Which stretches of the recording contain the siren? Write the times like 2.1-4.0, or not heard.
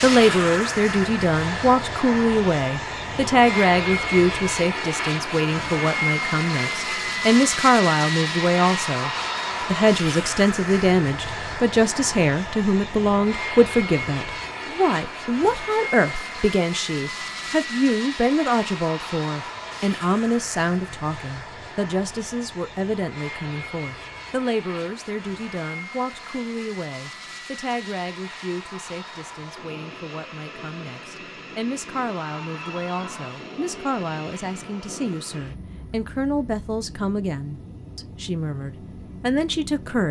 not heard.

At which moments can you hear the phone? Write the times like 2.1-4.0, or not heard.
32.2-33.4.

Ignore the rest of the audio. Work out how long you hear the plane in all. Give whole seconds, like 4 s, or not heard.
40 s.